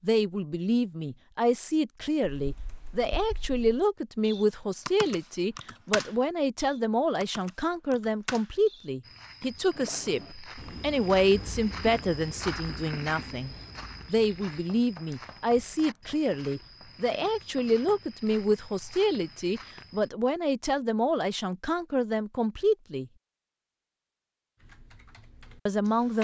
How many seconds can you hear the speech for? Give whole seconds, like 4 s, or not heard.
24 s.